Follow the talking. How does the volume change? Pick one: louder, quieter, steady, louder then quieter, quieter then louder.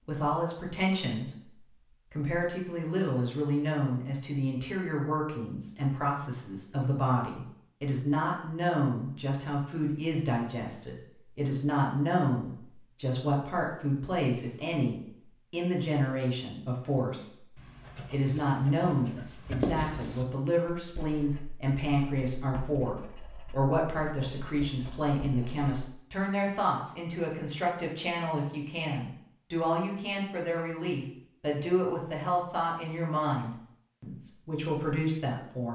steady.